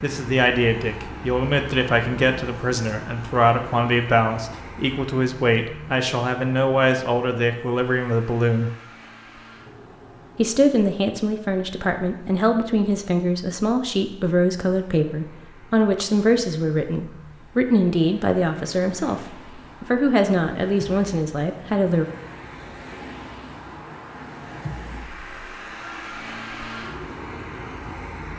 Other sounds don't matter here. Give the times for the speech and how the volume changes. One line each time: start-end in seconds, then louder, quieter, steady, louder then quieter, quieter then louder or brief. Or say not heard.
0.0-8.7 steady
10.3-22.1 steady.